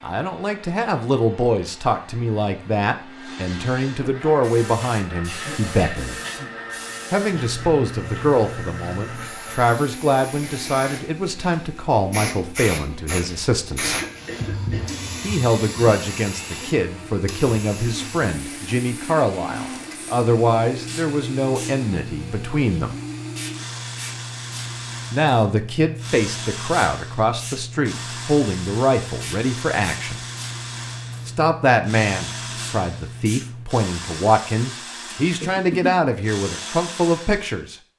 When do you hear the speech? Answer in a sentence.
The speech can be heard from 0.0 to 6.2 s, from 7.1 to 14.0 s, from 15.2 to 22.9 s, from 25.1 to 30.2 s and from 31.2 to 37.8 s.